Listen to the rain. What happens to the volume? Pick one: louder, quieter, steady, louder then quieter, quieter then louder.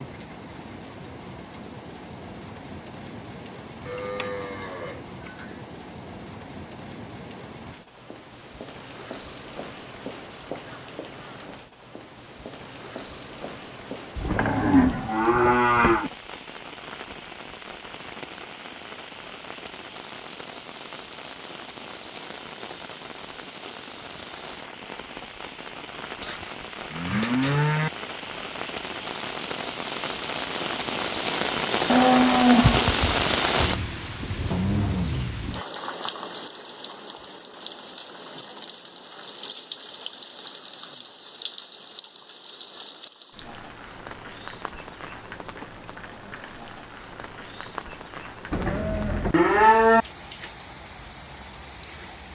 louder then quieter.